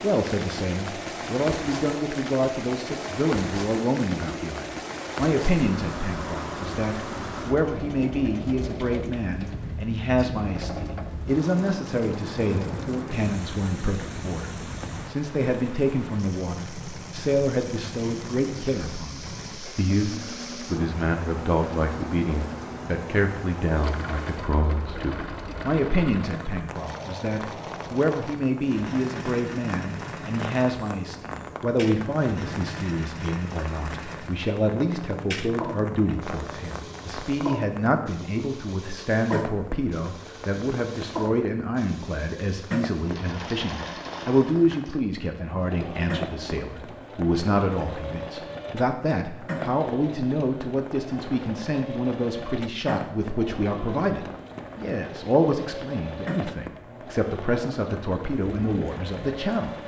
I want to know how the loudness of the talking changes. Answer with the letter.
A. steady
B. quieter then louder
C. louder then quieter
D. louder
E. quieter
A.